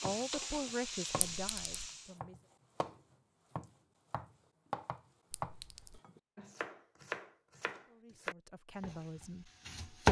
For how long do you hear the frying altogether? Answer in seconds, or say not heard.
2 s.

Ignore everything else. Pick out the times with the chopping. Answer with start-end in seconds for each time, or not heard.
0.1-1.4, 2.2-10.0.